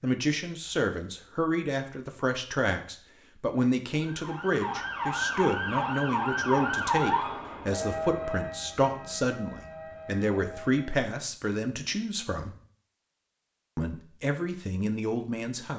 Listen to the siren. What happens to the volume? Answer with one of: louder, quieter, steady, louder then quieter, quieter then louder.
quieter.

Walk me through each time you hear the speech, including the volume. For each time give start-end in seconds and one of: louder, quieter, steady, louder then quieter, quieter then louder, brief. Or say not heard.
0.0-12.6 steady
13.8-15.7 brief.